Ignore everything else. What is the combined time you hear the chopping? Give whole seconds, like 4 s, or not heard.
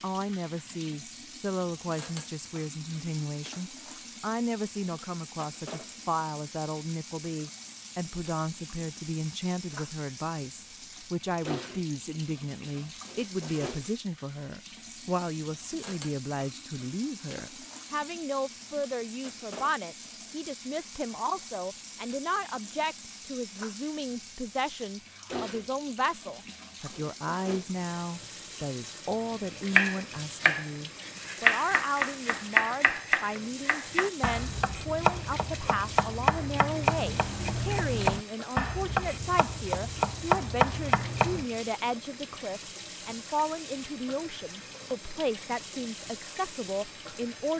12 s.